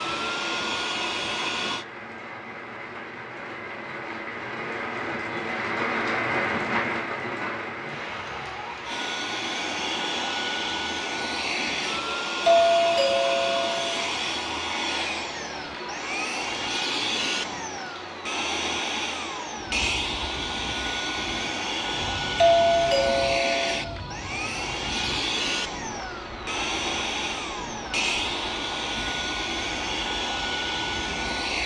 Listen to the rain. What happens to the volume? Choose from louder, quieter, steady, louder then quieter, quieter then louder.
quieter.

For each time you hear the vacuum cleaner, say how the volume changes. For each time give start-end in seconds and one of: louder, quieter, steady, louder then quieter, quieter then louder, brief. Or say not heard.
0.0-1.9 brief
8.8-31.6 steady.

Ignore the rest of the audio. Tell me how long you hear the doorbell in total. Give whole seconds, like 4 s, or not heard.
3 s.